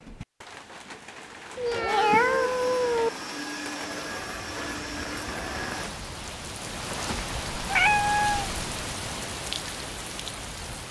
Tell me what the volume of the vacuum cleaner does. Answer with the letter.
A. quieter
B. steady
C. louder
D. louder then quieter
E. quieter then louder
B.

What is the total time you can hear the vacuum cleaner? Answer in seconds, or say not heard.
4 s.